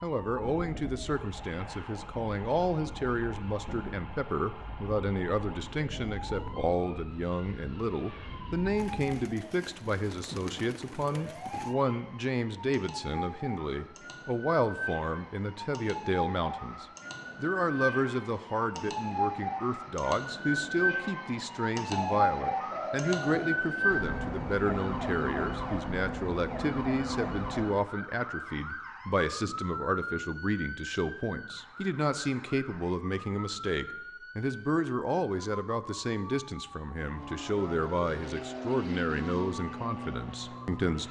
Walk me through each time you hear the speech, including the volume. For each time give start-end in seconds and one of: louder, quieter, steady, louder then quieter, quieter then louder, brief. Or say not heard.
0.0-41.0 steady.